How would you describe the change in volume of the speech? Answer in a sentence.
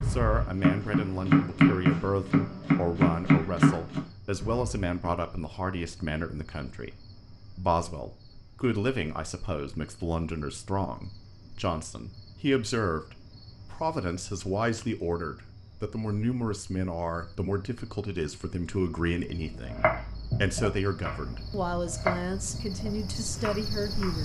The loudness of the speech stays about the same.